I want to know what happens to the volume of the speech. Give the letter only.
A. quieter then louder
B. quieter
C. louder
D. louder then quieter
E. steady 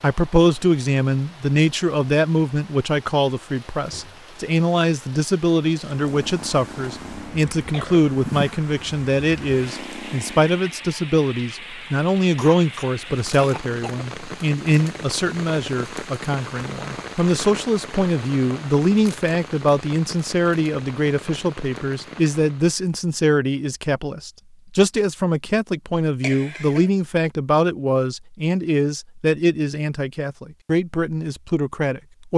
E.